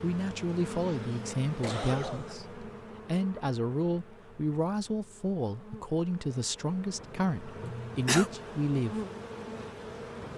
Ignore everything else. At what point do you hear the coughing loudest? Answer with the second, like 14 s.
8 s.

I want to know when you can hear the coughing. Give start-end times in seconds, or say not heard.
0.9-2.4, 7.6-8.2.